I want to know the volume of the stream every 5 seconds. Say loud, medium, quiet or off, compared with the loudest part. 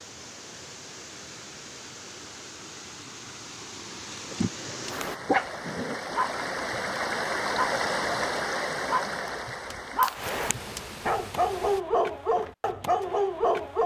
medium, loud, medium.